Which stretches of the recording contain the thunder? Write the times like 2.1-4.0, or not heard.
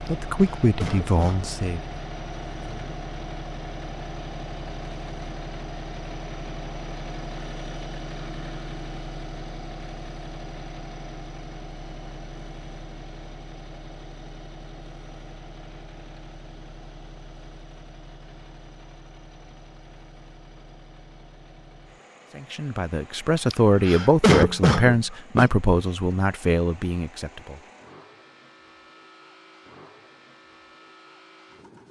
not heard.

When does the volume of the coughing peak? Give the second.
24 s.